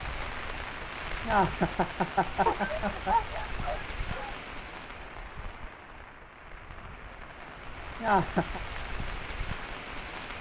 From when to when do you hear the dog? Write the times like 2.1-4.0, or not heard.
2.5-4.3.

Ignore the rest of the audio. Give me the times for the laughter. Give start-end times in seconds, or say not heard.
1.2-3.1, 8.0-8.6.